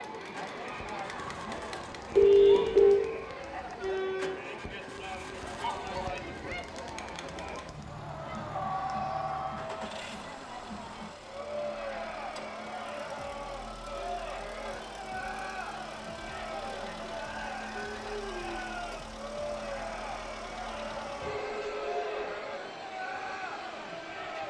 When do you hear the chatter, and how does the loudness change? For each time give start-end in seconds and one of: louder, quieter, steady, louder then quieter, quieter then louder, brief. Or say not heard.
0.0-24.4 steady.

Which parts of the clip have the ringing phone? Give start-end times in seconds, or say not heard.
2.1-3.0, 8.7-9.6, 21.2-22.5.